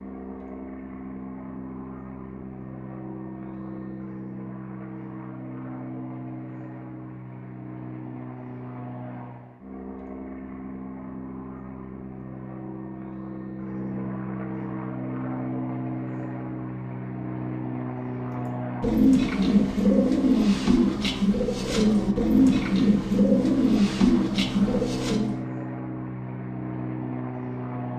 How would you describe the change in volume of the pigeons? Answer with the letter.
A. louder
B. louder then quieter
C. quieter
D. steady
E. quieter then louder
D.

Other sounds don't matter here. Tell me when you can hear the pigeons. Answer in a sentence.
You can hear the pigeons from 18.4 to 25.4 s.